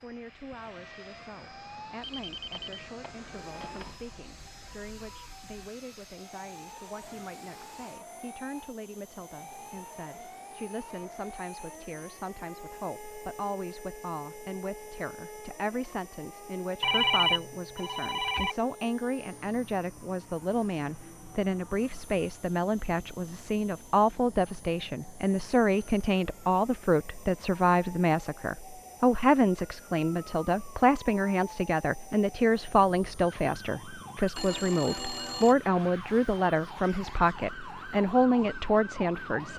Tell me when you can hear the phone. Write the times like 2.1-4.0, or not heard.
2.0-4.0, 16.8-18.6, 34.4-35.5.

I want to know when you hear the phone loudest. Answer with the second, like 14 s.
17 s.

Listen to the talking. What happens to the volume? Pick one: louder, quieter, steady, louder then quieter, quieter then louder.
louder.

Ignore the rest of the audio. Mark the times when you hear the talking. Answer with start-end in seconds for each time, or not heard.
0.0-39.5.